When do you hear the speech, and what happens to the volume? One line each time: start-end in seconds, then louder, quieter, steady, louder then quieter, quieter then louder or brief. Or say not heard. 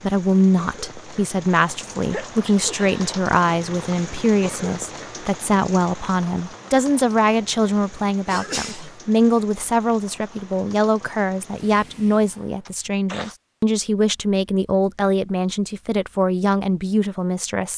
0.0-17.7 steady.